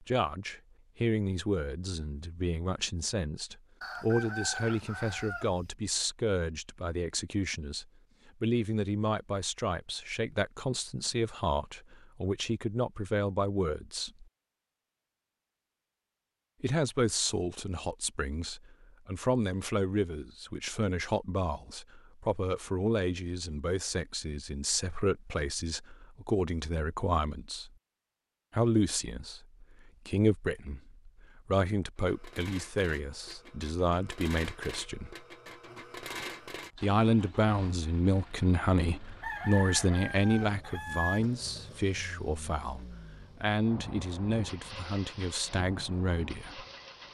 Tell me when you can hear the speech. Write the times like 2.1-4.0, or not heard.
0.0-14.2, 16.6-27.7, 28.5-35.1, 36.8-46.6.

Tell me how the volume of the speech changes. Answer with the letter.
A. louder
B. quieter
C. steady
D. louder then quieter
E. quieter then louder
C.